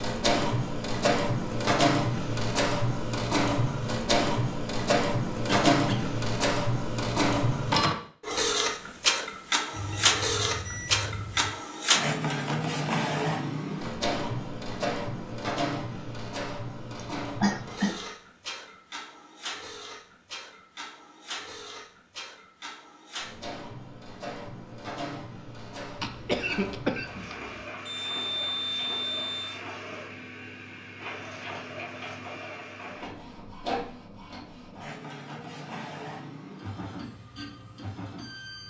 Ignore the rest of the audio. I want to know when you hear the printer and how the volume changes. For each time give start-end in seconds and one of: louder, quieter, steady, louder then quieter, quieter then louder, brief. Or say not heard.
0.0-38.6 quieter.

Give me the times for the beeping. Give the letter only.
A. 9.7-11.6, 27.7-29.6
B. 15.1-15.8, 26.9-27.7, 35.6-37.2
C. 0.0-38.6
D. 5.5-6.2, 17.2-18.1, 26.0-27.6
A.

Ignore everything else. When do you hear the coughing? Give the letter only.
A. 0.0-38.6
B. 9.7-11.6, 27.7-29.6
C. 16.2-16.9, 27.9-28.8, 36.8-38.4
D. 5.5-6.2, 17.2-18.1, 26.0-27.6
D.